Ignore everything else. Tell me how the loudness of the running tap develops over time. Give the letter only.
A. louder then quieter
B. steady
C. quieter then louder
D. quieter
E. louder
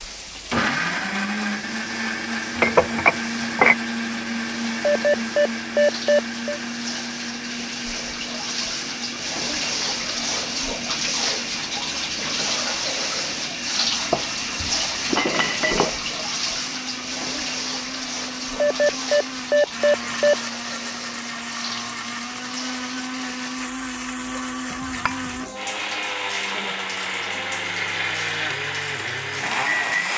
A.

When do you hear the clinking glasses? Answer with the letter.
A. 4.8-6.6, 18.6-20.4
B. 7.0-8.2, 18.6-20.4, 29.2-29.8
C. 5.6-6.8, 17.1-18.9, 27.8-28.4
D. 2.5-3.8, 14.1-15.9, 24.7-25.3
D.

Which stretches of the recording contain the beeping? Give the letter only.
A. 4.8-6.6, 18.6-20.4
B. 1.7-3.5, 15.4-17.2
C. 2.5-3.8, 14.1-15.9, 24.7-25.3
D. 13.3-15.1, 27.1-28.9
A.